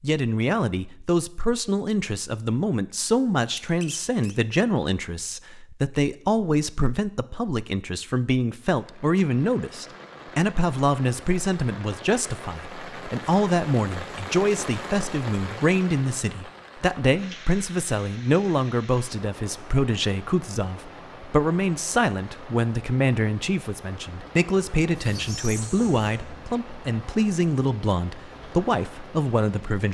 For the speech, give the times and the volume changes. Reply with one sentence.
You can hear the speech from 0.0 to 29.8 s, at a steady volume.